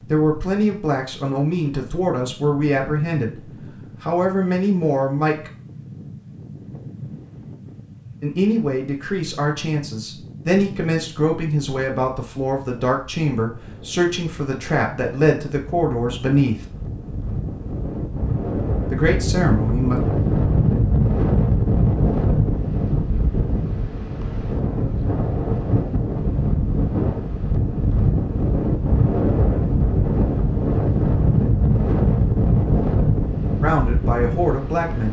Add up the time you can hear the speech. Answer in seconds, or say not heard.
16 s.